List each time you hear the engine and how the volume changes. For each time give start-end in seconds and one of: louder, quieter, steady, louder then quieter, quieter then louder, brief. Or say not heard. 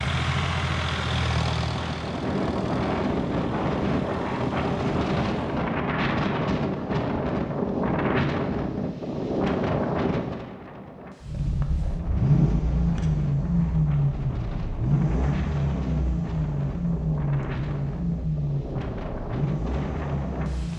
0.0-5.7 quieter
11.2-20.7 quieter.